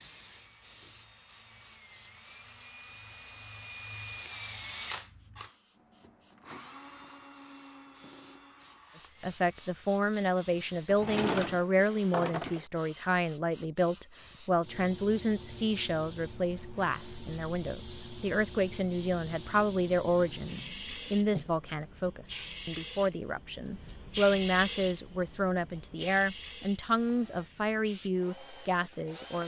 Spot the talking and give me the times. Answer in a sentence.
The talking can be heard from 9.2 to 29.4 s.